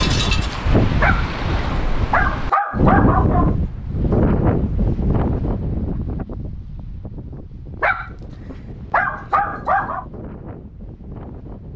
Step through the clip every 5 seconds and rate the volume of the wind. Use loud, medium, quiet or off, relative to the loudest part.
loud, medium, quiet.